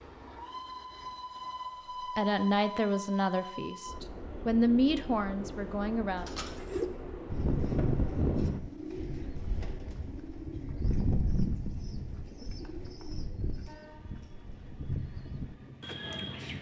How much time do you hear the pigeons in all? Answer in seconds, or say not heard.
10 s.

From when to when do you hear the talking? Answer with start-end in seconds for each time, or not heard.
2.1-6.3.